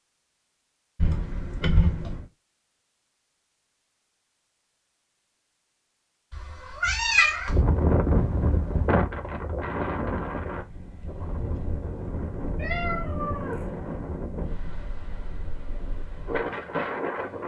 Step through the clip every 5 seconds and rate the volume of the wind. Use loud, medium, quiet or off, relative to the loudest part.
off, loud, medium, medium.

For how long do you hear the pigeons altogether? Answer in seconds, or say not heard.
not heard.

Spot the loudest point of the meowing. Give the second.
7 s.